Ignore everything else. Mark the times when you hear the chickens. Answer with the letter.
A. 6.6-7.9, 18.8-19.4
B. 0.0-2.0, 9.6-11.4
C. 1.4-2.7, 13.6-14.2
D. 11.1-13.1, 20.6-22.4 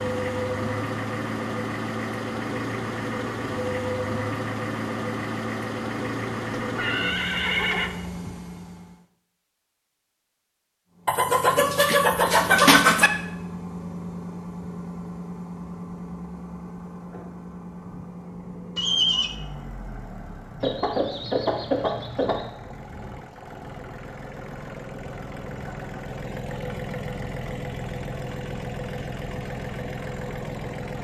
D.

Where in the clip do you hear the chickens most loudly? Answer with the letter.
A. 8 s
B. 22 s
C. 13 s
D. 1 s
C.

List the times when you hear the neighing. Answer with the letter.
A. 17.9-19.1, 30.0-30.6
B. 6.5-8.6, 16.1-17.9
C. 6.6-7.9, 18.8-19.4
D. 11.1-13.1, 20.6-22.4
C.